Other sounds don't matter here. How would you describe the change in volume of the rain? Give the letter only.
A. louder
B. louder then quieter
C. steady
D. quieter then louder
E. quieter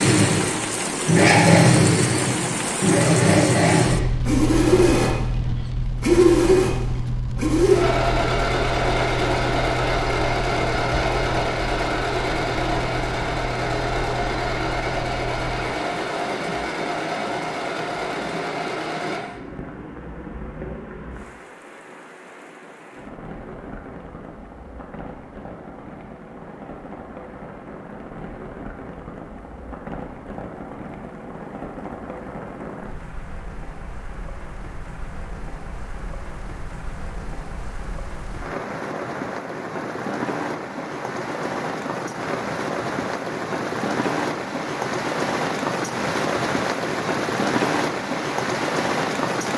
D.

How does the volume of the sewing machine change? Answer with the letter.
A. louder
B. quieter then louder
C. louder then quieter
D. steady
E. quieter
E.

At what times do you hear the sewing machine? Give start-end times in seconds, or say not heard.
0.0-19.2.